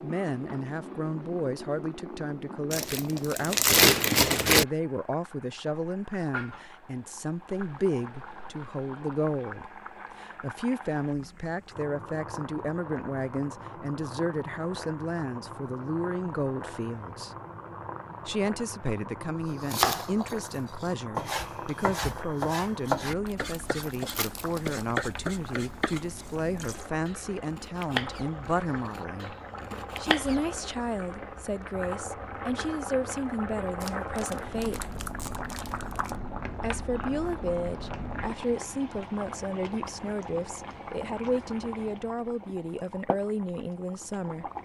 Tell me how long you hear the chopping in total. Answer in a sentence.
You can hear the chopping for 11 seconds altogether.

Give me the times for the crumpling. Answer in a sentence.
The crumpling can be heard from 2.7 to 4.7 s, from 23.2 to 24.9 s and from 33.8 to 36.1 s.